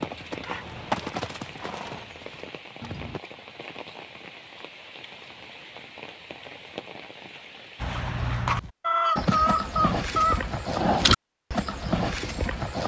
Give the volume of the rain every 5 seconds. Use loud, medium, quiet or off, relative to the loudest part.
loud, loud, off.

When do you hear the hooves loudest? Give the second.
11 s.